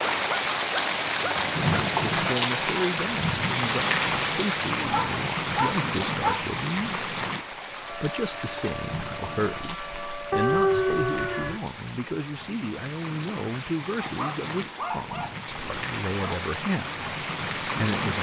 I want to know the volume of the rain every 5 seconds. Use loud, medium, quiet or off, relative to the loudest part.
loud, medium, quiet, medium.